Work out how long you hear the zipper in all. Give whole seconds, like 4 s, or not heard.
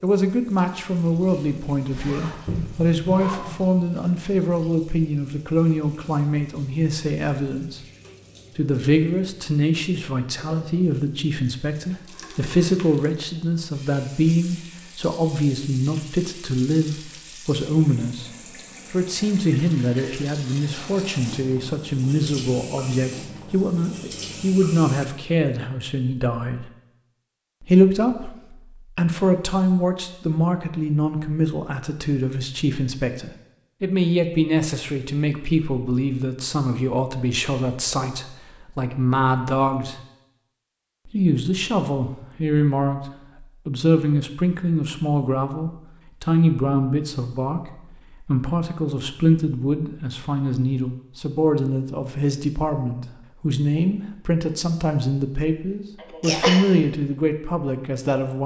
2 s.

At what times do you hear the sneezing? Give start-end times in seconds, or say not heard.
56.0-56.6.